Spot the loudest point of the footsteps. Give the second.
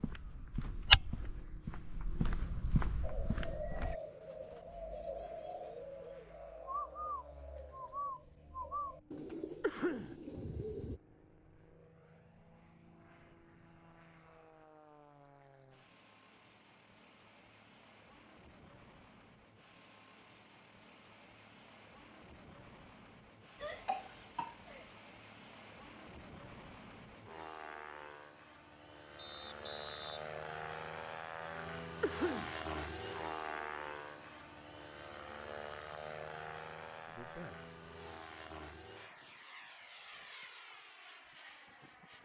1 s.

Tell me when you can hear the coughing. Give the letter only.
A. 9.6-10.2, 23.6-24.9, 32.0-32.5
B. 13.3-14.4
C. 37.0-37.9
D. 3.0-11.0
A.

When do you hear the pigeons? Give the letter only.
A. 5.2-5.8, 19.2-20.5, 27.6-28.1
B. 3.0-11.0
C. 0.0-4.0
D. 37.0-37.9
B.